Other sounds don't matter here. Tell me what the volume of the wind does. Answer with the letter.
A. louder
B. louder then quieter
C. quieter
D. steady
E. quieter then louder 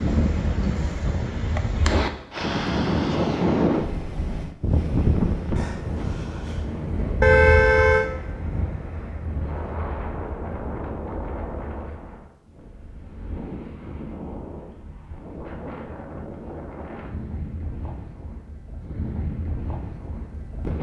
C.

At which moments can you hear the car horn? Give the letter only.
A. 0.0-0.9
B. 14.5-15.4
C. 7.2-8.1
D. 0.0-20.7
C.